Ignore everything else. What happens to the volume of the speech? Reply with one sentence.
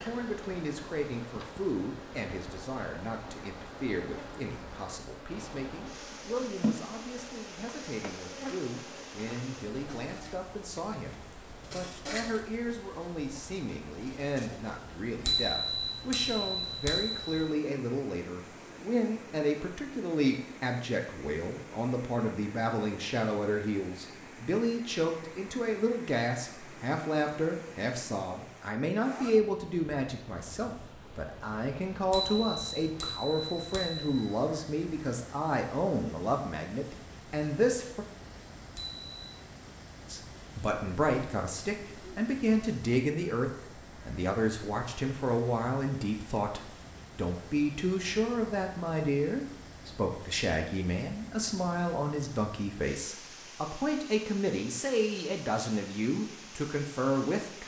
The loudness of the speech goes up.